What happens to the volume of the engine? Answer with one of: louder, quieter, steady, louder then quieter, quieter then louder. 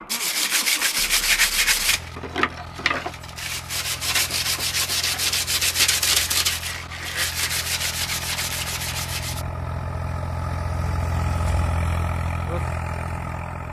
louder.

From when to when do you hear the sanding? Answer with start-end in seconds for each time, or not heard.
0.1-9.4.